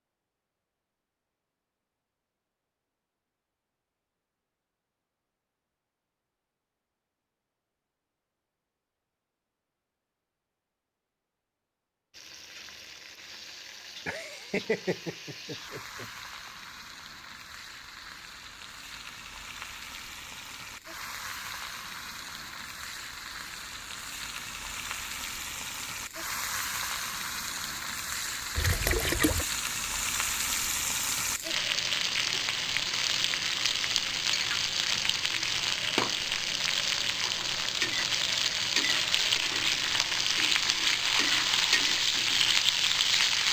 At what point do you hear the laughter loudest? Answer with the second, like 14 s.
15 s.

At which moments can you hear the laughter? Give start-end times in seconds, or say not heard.
14.1-16.5.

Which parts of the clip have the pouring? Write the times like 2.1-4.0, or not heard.
28.6-29.4.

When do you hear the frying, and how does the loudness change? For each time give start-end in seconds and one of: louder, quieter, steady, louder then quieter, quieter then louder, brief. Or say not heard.
12.1-43.4 louder.